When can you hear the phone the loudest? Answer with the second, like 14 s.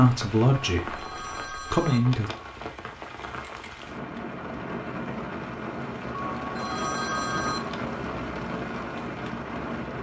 7 s.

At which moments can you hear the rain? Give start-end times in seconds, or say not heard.
0.0-9.9.